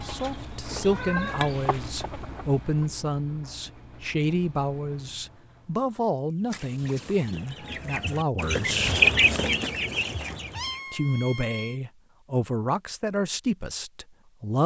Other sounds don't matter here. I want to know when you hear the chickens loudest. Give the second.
9 s.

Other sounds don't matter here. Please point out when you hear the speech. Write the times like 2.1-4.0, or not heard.
0.1-8.9, 10.9-14.6.